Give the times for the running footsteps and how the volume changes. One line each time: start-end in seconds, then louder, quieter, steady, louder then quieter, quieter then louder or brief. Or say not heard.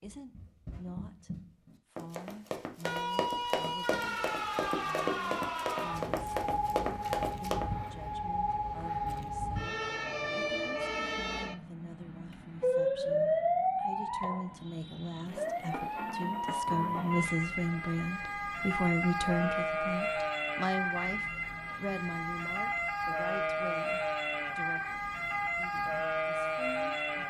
0.0-7.7 louder.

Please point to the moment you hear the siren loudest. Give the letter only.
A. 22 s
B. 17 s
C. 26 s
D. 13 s
D.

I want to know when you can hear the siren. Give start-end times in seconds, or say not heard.
2.8-27.2.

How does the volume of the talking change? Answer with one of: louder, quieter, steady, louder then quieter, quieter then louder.
louder then quieter.